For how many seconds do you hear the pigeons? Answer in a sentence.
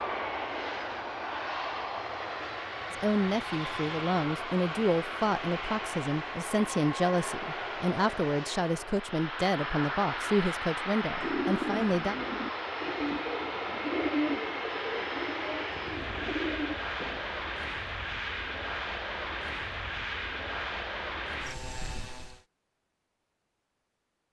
The pigeons can be heard for 6 seconds in total.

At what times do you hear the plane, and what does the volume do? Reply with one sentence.
The plane can be heard from 0.0 to 22.4 s, at a steady volume.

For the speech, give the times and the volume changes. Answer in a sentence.
The speech can be heard from 2.9 to 12.2 s, at a steady volume.